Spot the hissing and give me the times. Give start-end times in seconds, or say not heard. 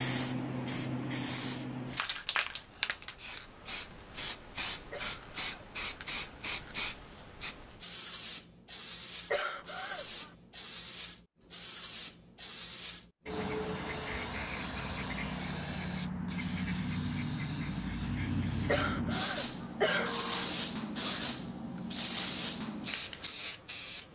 0.0-24.0.